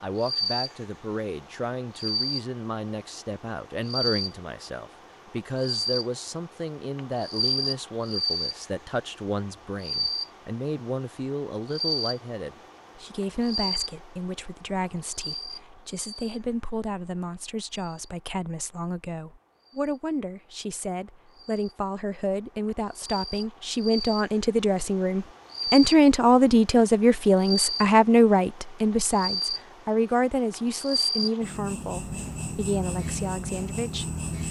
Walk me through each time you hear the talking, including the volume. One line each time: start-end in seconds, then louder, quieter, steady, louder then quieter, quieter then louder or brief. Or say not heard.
0.0-34.4 louder.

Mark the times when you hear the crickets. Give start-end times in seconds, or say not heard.
0.0-34.4.